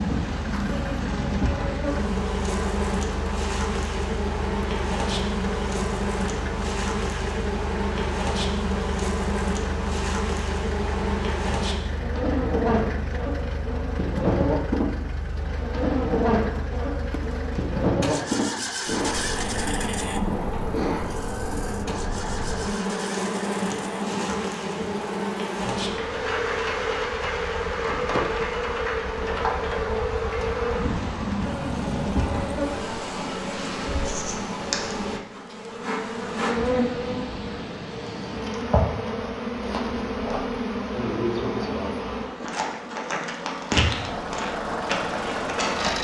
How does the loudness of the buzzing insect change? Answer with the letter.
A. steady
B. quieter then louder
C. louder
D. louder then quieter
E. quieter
A.